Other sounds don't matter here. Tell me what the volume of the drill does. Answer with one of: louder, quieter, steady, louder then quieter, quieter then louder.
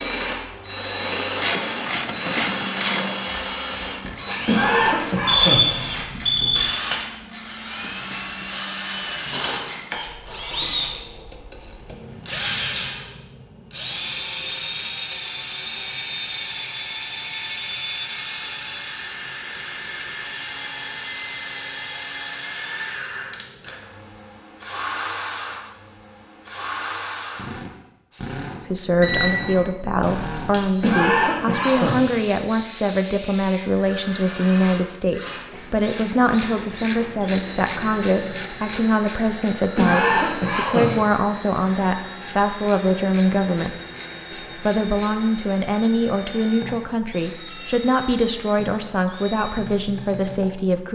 quieter.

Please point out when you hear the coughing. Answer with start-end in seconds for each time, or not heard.
4.5-5.7, 30.8-32.0, 39.8-41.0.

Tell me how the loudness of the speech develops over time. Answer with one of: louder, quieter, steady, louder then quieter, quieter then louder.
steady.